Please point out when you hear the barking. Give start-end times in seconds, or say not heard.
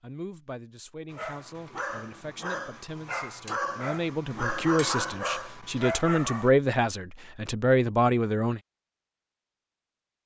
1.1-6.5.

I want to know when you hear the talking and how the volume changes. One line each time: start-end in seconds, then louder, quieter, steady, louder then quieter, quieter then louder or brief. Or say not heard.
0.0-8.6 louder.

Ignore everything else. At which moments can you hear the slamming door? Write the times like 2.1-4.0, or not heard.
not heard.